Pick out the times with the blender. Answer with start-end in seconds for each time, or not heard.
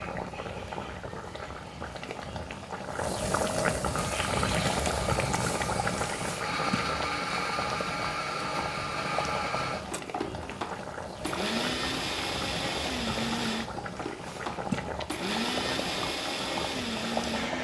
3.9-17.5.